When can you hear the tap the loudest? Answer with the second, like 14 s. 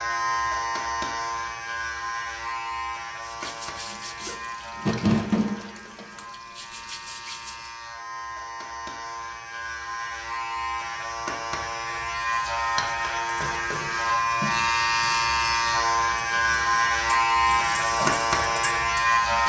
5 s.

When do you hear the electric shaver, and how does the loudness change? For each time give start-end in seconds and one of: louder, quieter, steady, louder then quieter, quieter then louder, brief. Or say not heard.
0.0-19.4 quieter then louder.